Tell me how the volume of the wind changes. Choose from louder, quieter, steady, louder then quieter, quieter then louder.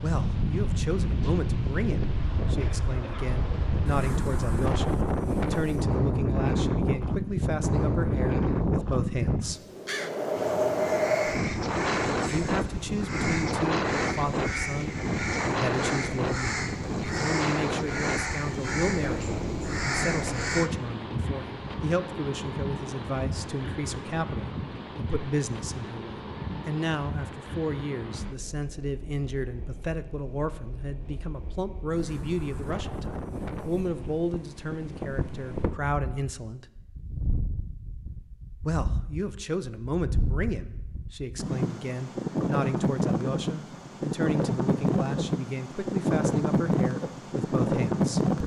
quieter then louder.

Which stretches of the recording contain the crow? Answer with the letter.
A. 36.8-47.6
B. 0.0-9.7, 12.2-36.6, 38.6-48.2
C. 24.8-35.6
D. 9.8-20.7
D.